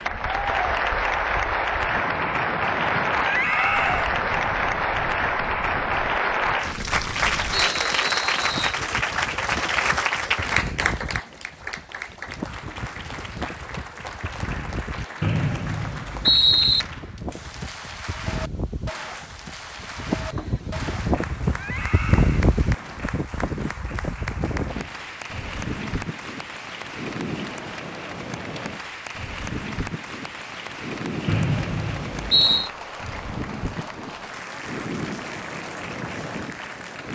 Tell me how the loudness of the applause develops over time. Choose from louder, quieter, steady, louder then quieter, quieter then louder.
quieter.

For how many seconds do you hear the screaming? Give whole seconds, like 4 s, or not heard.
2 s.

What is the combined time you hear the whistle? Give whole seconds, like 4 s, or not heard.
4 s.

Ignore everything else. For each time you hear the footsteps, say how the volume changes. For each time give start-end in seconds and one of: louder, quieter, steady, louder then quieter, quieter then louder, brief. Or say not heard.
not heard.